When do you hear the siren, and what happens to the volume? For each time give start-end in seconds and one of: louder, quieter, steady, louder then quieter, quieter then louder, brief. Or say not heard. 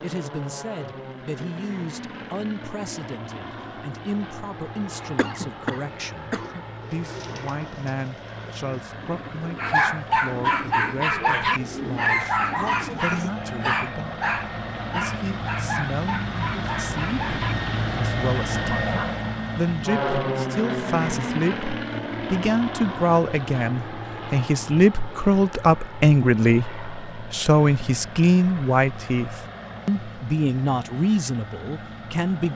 not heard.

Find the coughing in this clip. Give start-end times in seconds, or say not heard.
5.2-6.7.